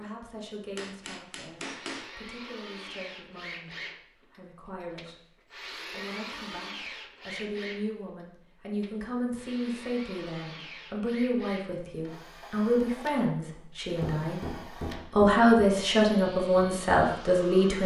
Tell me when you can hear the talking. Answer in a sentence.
The talking can be heard from 0.0 to 5.2 s, from 5.9 to 14.4 s and from 15.1 to 17.8 s.